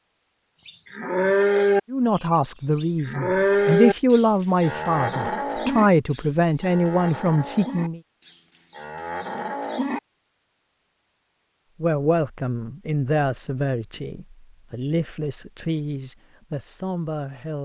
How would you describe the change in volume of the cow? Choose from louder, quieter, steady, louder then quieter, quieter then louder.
quieter.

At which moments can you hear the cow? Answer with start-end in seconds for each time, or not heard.
0.6-10.0.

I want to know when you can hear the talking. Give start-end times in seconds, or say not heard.
1.9-8.0, 11.8-17.6.